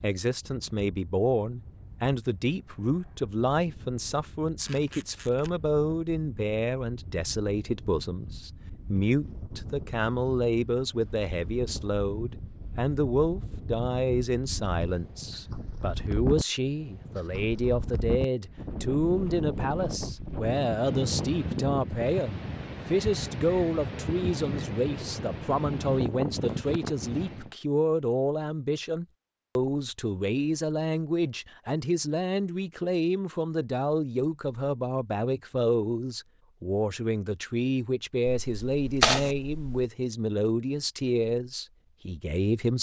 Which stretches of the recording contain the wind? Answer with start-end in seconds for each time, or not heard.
0.2-27.5.